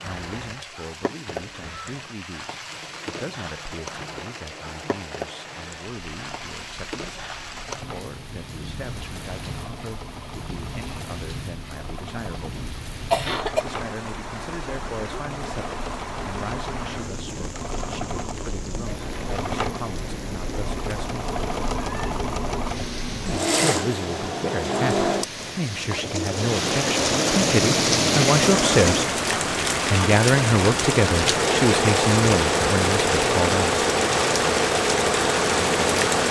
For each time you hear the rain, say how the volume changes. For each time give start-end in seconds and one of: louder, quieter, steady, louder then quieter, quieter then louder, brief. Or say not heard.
0.0-36.2 louder.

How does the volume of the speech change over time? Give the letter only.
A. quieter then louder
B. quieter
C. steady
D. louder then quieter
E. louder
E.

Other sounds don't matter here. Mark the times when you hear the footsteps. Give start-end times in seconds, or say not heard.
not heard.